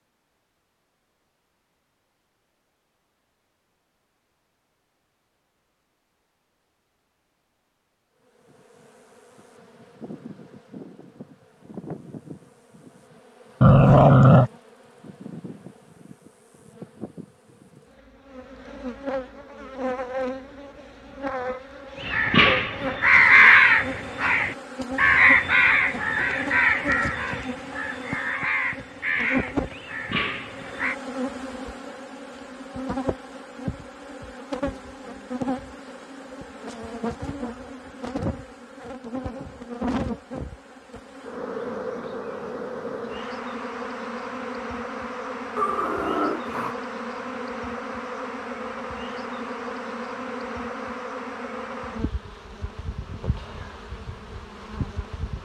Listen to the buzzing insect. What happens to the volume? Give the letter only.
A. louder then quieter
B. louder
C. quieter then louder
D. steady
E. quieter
B.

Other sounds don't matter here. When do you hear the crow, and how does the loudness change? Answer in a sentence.
The crow can be heard from 22.0 to 30.9 s, getting quieter.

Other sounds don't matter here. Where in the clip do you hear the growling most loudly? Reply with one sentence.
The loudest moment of the growling is at 14 seconds.